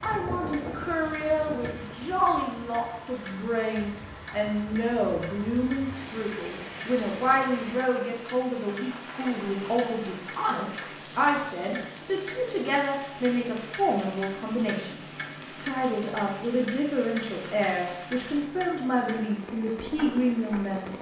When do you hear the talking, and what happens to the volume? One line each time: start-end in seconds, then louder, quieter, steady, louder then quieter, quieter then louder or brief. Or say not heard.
0.0-20.9 steady.